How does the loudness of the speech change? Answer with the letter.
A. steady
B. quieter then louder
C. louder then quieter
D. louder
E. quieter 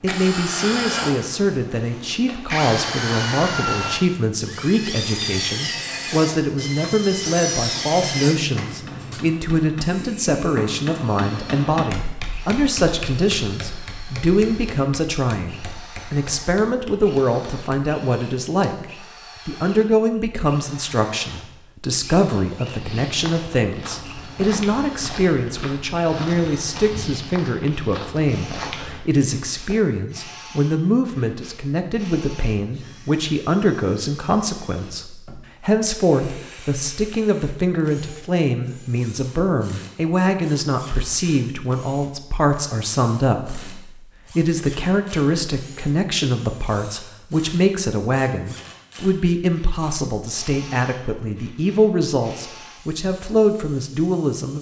A.